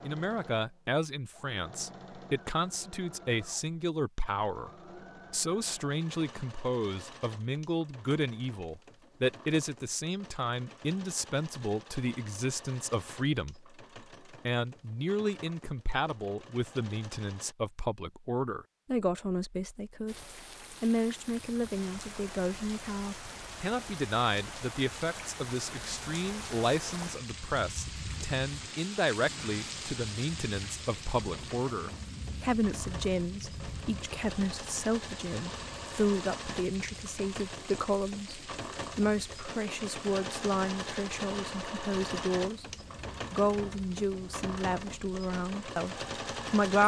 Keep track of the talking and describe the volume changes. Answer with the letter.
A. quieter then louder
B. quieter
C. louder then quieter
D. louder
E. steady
E.